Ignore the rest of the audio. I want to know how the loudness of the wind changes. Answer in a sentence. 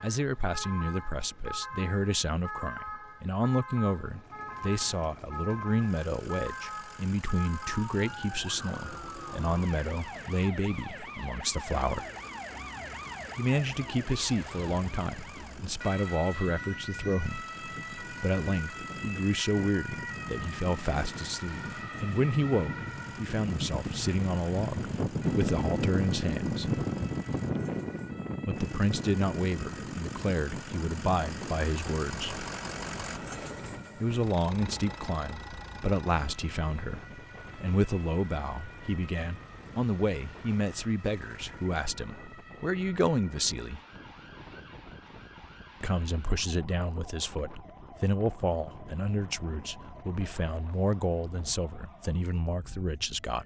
The volume of the wind goes up, then down.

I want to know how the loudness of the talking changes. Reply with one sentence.
The volume of the talking stays about the same.